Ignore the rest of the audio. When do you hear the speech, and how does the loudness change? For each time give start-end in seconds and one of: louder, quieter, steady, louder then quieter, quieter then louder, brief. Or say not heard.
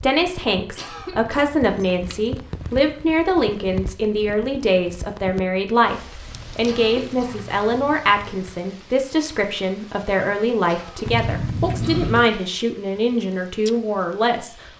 0.0-14.7 steady.